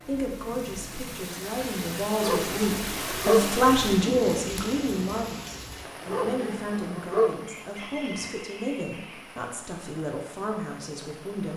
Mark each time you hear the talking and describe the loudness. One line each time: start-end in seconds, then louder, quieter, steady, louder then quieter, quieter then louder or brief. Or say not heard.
0.1-11.5 louder then quieter.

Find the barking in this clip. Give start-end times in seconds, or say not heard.
2.2-3.5, 6.0-7.4.